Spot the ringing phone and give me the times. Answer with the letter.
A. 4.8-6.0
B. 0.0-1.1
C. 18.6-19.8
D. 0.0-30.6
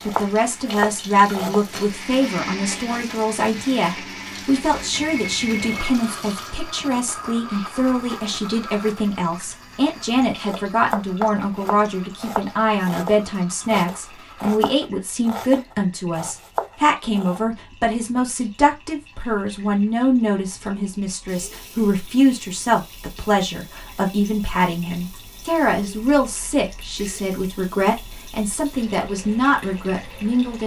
A.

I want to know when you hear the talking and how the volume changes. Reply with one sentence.
The talking can be heard from 0.0 to 30.6 s, at a steady volume.